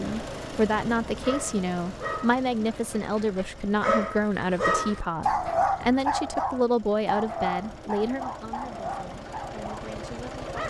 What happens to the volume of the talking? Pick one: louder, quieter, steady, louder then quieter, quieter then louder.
quieter.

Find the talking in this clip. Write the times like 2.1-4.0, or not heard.
0.0-10.6.